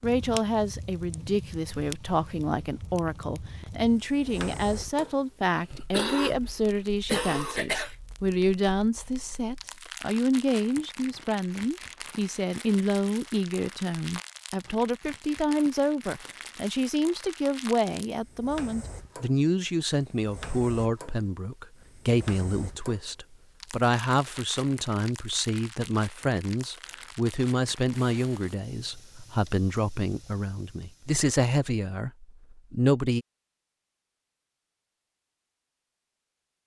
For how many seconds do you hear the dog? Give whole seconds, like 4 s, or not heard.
not heard.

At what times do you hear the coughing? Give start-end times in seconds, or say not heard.
5.7-8.0.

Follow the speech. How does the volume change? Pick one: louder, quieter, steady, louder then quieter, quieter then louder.
steady.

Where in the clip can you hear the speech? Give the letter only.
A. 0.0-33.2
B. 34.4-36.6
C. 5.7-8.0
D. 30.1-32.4
A.